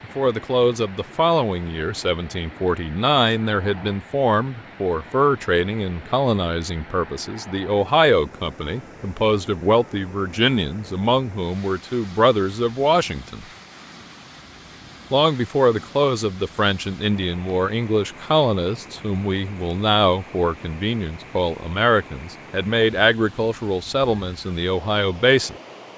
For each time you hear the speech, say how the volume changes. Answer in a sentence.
The speech can be heard from 0.0 to 13.4 s, at a steady volume; and from 15.1 to 25.6 s, at a steady volume.